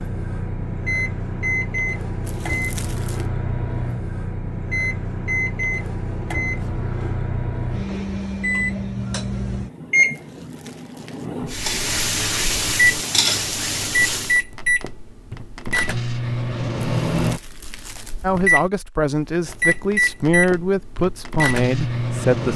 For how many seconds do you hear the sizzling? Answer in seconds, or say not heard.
3 s.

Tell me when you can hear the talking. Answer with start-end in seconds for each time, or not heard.
18.2-22.5.